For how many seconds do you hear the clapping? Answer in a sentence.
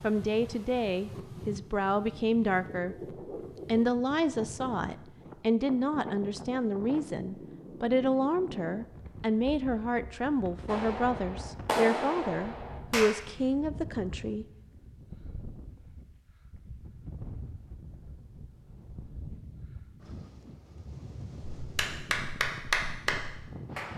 The clapping can be heard for 5 seconds in total.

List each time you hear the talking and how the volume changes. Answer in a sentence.
You can hear the talking briefly from 0.0 to 3.0 s; and from 3.6 to 14.4 s, at a steady volume.